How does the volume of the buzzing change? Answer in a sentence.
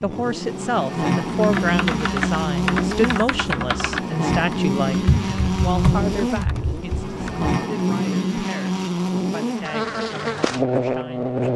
The loudness of the buzzing stays about the same.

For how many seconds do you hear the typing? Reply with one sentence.
The typing can be heard for 6 seconds in total.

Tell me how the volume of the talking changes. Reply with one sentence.
The loudness of the talking goes down.